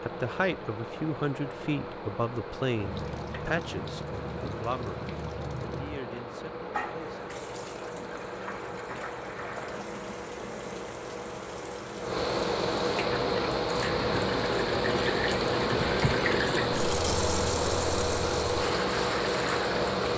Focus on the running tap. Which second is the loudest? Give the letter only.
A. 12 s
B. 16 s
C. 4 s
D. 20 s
B.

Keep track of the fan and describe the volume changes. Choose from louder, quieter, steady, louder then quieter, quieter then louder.
louder.